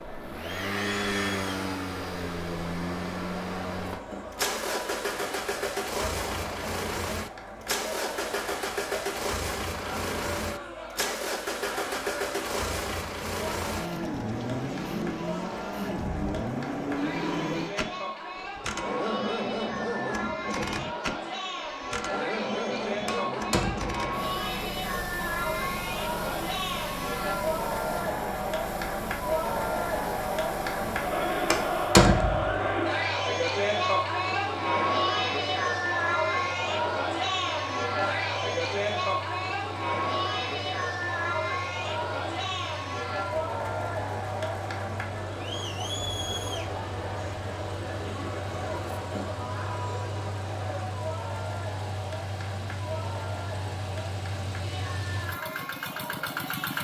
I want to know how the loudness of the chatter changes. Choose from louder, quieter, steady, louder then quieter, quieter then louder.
louder then quieter.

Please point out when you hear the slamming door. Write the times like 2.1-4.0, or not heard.
23.1-23.9, 31.5-32.5.